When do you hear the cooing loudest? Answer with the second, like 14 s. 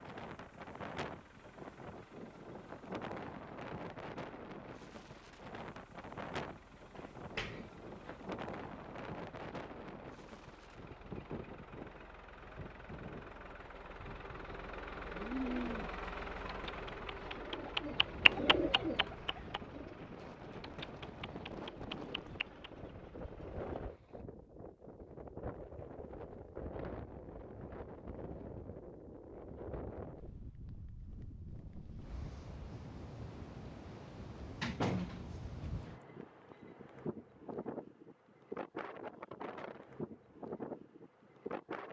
18 s.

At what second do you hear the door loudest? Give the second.
35 s.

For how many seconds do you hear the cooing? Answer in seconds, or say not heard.
8 s.